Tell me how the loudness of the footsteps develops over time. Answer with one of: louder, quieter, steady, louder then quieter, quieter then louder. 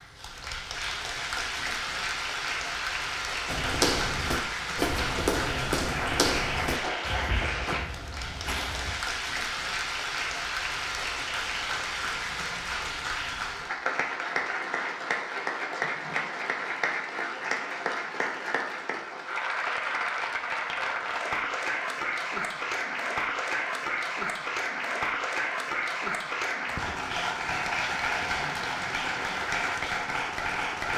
quieter.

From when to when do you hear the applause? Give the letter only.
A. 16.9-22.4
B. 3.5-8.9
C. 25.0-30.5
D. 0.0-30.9
D.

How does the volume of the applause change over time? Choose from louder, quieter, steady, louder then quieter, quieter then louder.
steady.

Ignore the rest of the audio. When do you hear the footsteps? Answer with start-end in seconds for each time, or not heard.
3.5-8.9.